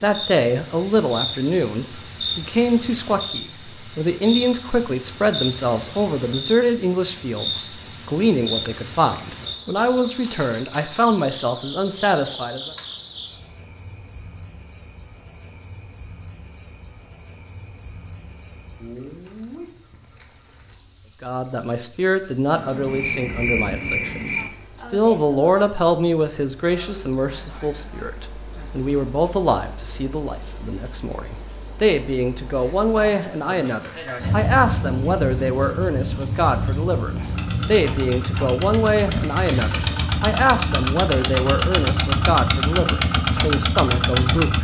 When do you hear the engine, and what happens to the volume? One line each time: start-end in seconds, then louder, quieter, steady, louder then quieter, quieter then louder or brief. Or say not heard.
37.2-44.5 louder.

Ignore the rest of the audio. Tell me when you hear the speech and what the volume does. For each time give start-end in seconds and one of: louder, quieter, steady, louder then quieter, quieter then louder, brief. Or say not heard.
0.0-12.7 steady
21.2-44.5 steady.